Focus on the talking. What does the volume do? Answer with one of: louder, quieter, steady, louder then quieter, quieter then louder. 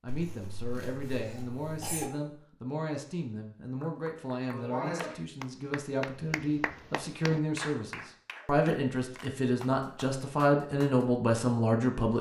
louder.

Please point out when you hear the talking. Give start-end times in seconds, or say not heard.
0.0-12.1.